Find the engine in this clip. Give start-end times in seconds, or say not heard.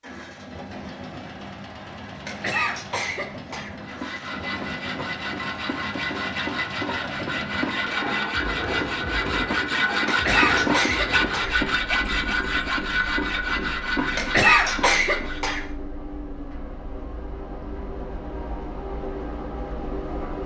0.0-20.4.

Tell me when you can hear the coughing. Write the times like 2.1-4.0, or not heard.
2.2-3.8, 10.1-11.6, 14.2-15.7.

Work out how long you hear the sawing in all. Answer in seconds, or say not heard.
12 s.